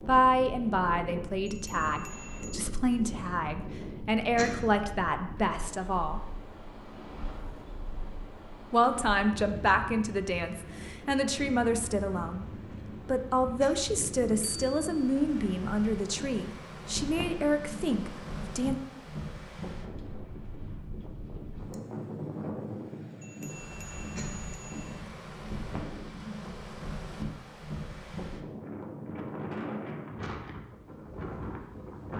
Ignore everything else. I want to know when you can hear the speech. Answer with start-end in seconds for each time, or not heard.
0.1-6.2, 8.7-12.4, 13.1-18.8.